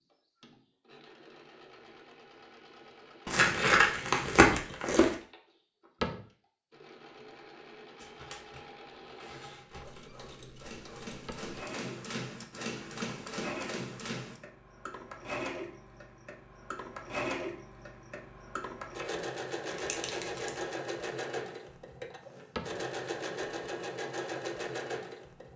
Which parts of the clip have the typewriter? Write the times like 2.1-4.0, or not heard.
8.0-14.4.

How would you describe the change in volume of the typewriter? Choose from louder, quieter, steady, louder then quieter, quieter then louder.
louder.